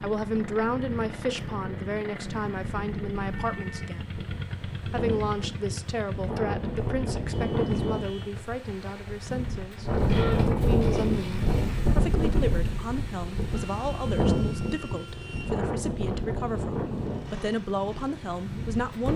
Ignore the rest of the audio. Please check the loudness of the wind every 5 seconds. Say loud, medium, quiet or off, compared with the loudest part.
quiet, medium, loud, medium.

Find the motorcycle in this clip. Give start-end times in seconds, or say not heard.
0.0-19.1.